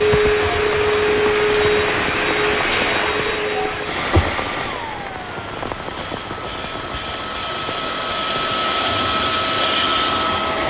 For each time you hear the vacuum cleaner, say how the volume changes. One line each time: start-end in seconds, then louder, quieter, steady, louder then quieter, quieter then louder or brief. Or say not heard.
0.0-10.6 quieter then louder.